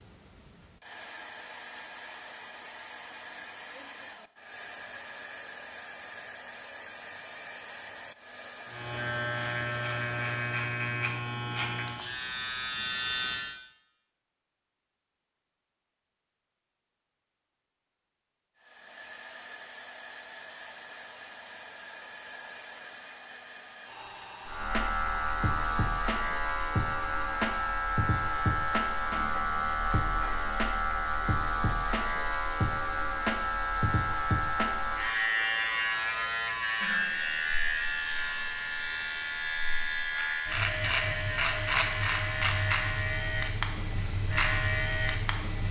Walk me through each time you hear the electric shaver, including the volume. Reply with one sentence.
You can hear the electric shaver from 8.7 to 13.6 s, at a steady volume; and from 24.4 to 45.6 s, at a steady volume.